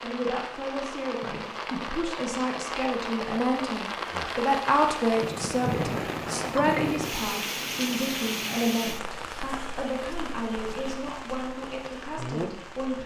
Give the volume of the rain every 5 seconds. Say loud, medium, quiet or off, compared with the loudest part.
loud, loud, medium.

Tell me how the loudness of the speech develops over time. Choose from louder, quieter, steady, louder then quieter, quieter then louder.
louder then quieter.